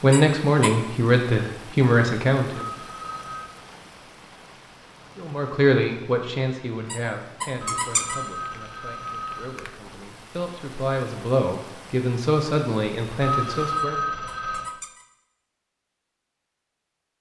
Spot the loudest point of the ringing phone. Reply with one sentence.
The volume of the ringing phone peaks at 14 seconds.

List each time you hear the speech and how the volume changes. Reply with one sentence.
You can hear the speech briefly from 0.0 to 2.6 s; and from 5.2 to 14.0 s, getting quieter then louder.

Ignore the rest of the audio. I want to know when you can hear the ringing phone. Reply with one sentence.
You can hear the ringing phone from 2.7 to 3.5 s, from 7.7 to 9.6 s and from 13.2 to 14.7 s.